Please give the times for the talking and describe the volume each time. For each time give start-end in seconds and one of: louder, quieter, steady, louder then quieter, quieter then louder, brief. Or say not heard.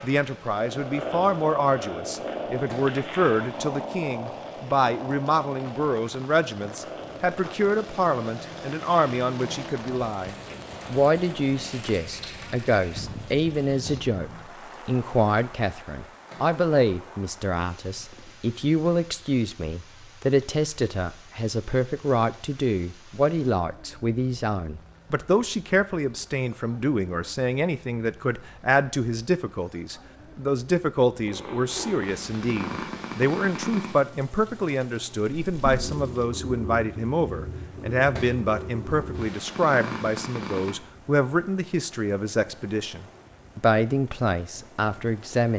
0.0-45.5 steady.